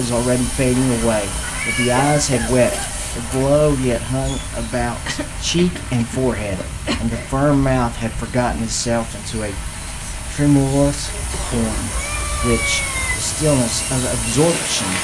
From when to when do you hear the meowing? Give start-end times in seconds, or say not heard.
1.4-2.3, 6.5-7.3, 11.2-13.2.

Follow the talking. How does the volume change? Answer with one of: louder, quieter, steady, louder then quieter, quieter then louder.
steady.